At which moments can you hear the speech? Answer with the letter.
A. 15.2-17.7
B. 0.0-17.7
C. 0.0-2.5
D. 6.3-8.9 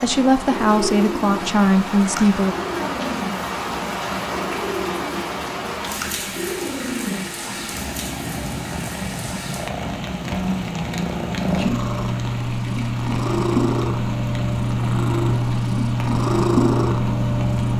C.